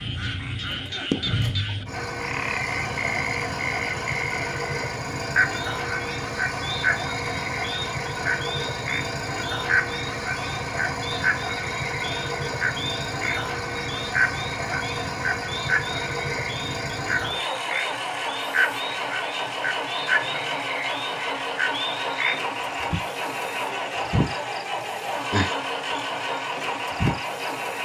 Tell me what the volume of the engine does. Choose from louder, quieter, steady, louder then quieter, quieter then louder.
steady.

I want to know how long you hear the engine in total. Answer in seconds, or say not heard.
28 s.